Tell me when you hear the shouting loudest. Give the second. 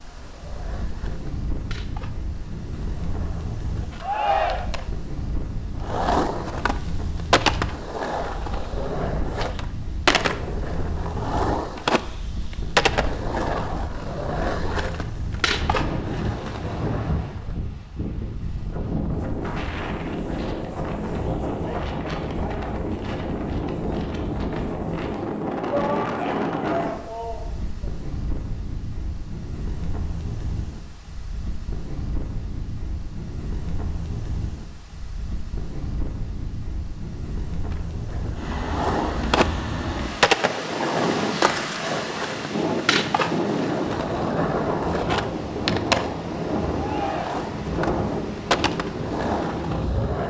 4 s.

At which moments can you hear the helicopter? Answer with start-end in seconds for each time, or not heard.
not heard.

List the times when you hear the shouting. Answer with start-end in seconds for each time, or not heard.
4.0-4.7, 25.6-27.9, 46.7-47.4.